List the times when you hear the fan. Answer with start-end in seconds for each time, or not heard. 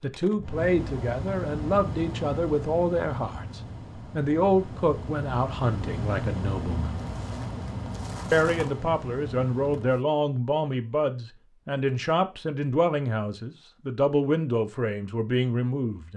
0.0-10.1.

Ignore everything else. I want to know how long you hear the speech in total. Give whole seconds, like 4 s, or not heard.
15 s.